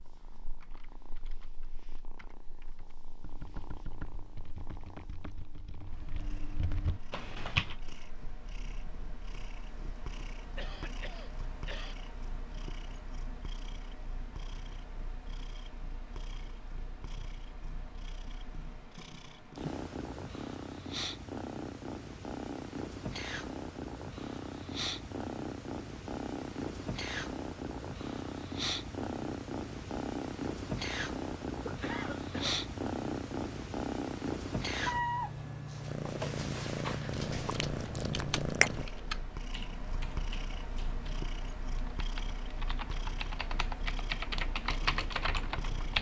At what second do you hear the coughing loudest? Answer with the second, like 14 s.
32 s.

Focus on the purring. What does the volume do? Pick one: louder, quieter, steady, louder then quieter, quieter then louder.
louder.